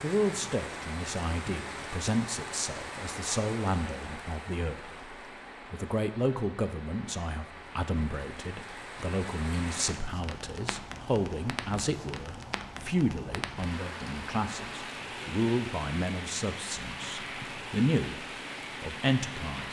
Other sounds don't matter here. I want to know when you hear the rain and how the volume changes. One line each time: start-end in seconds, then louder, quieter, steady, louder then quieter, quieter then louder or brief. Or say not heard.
0.0-19.6 quieter then louder.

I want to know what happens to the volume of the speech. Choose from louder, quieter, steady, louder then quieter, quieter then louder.
steady.